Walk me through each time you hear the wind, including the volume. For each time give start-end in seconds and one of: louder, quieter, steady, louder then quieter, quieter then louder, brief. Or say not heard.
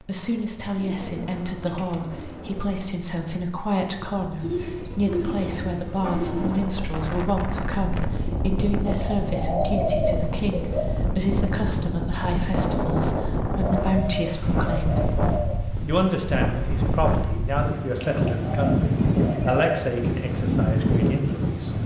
0.2-21.8 louder.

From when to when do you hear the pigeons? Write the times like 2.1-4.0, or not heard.
0.8-2.6, 4.4-6.8, 8.8-10.8, 13.6-15.8, 17.9-19.9.